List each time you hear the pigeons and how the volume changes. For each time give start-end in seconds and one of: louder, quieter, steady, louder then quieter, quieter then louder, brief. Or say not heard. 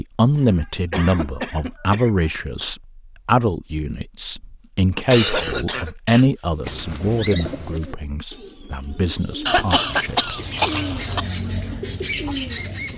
6.6-12.9 quieter then louder.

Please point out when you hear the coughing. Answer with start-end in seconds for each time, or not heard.
0.3-2.2, 5.1-6.8, 9.4-11.2.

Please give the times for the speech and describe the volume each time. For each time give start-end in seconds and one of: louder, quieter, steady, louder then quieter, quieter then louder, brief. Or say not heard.
0.0-10.4 quieter.